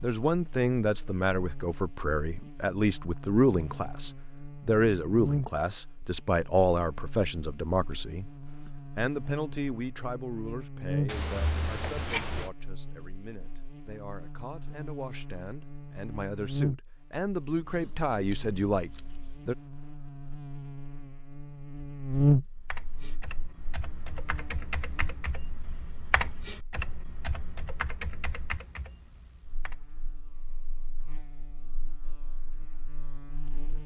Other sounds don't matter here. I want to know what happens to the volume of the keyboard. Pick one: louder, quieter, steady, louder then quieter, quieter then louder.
louder then quieter.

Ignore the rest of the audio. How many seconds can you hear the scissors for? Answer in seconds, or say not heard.
3 s.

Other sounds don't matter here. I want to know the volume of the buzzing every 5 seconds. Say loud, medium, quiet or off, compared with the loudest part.
quiet, medium, medium, medium, loud, quiet, quiet.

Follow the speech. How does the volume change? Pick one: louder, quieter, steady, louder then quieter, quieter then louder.
quieter then louder.